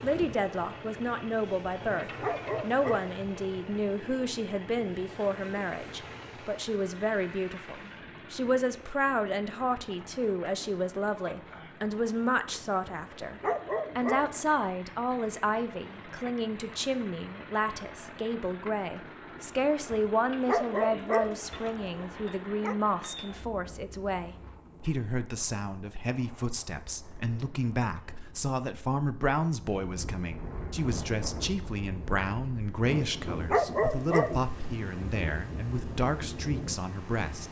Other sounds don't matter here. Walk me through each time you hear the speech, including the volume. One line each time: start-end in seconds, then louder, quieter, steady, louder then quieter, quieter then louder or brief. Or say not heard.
0.0-37.4 steady.